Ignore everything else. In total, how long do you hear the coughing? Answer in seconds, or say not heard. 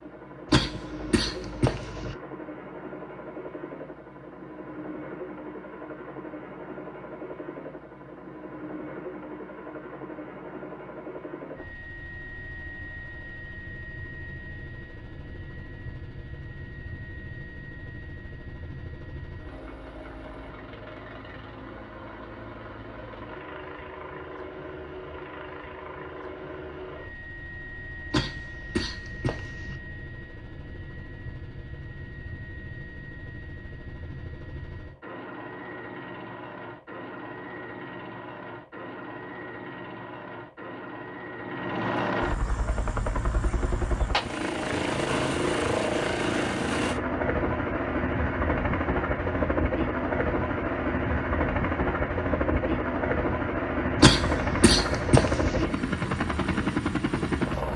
5 s.